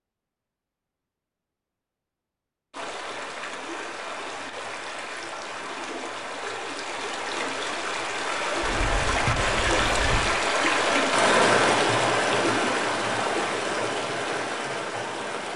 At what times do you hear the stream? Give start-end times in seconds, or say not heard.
2.7-15.5.